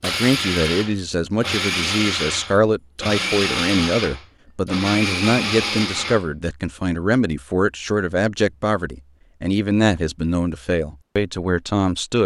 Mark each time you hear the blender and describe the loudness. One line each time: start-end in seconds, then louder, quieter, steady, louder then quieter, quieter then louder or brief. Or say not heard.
0.0-6.2 steady.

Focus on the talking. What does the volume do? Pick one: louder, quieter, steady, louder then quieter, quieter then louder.
steady.